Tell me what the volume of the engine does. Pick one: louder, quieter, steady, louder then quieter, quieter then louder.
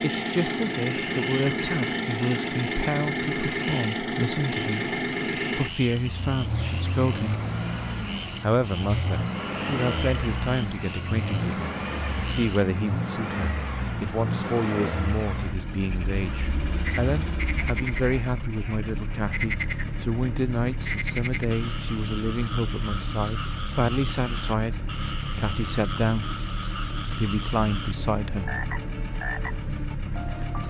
quieter.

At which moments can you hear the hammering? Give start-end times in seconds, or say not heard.
not heard.